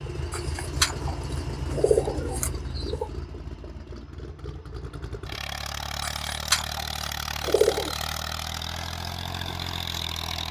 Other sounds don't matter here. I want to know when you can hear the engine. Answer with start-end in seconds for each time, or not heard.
0.0-10.4.